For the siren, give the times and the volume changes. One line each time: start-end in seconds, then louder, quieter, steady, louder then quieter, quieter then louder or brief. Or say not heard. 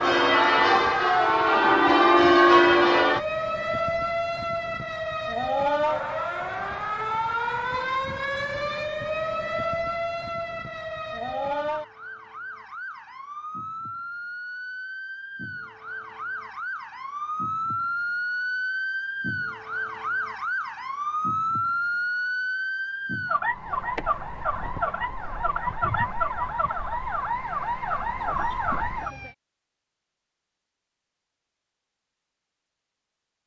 0.0-29.4 quieter then louder.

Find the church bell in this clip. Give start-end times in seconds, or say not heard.
0.0-3.2.